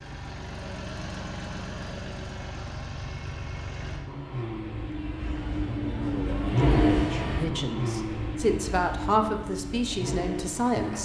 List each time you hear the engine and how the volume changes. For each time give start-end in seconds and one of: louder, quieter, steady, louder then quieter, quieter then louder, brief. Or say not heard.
0.0-11.0 louder then quieter.